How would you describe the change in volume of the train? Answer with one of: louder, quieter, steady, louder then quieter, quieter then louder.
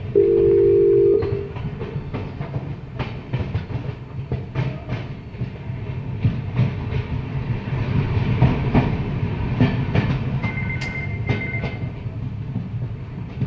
louder then quieter.